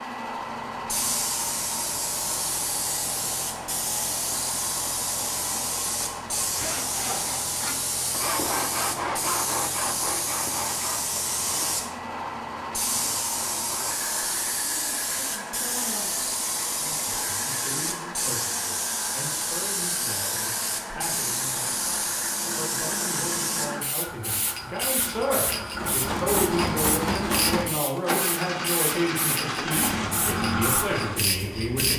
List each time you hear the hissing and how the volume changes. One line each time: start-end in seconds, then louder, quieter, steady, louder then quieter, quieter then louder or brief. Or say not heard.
0.0-31.9 steady.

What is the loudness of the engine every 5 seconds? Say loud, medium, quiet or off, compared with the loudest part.
quiet, quiet, quiet, quiet, medium, loud, loud.